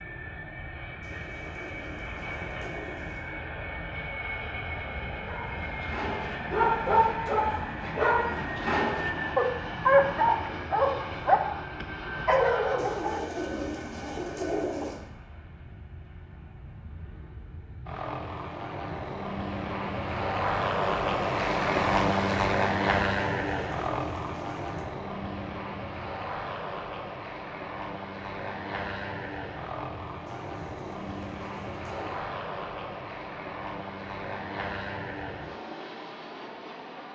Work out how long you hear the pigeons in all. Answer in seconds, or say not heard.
8 s.